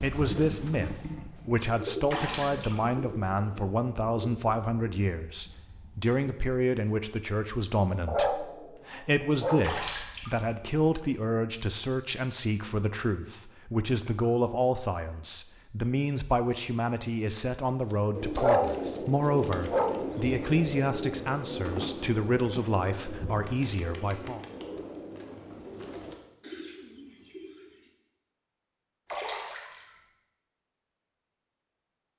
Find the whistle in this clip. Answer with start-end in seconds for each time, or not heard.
not heard.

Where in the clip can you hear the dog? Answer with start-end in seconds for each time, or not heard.
8.1-9.8, 18.4-20.1.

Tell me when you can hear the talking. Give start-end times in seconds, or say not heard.
0.0-24.4.